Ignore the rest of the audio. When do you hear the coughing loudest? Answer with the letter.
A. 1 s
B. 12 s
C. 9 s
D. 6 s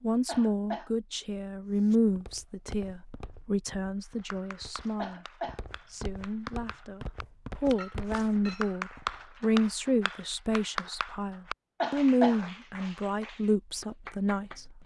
B.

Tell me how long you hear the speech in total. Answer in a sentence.
The speech can be heard for 15 seconds in total.